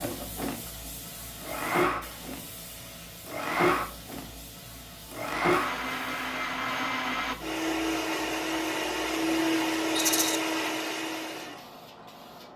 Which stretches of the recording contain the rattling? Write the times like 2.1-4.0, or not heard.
9.9-10.4.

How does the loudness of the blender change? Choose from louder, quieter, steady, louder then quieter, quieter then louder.
steady.